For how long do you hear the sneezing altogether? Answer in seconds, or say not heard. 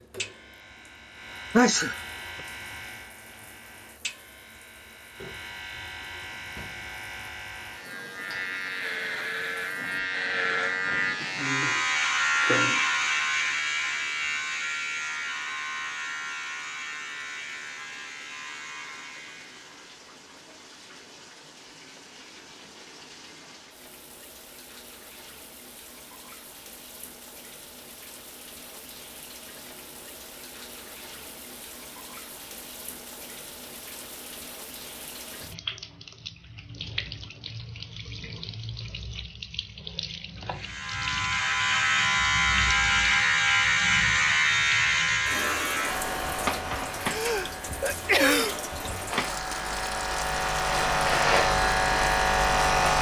2 s.